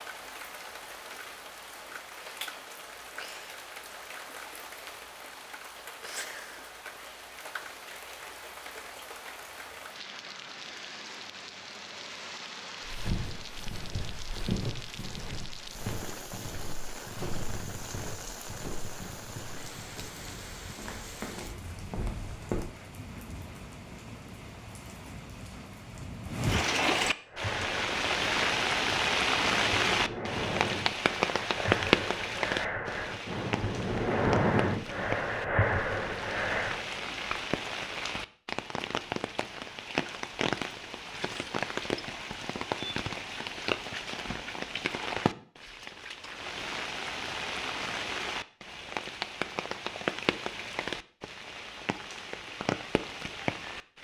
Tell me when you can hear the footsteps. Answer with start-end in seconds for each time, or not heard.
12.8-22.6.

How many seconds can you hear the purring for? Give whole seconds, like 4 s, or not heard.
not heard.